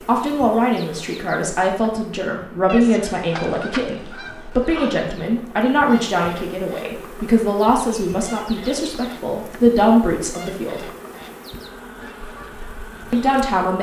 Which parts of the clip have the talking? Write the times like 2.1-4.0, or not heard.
0.1-10.8, 13.1-13.7.